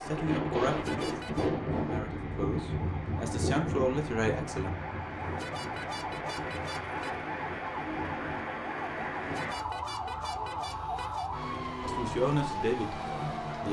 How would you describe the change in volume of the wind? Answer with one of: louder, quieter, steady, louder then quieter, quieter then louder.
quieter.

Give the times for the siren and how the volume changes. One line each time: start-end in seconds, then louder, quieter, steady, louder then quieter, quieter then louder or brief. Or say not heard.
0.0-13.6 louder.